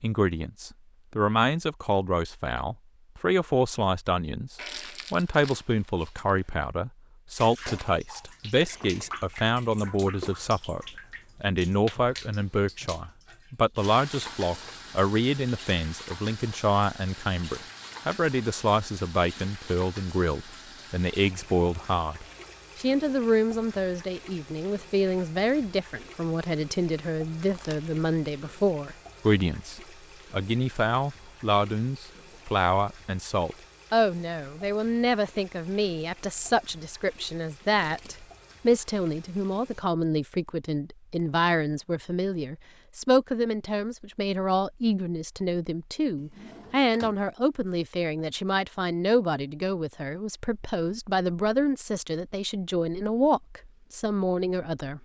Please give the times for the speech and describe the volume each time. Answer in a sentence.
You can hear the speech from 0.0 to 55.0 s, at a steady volume.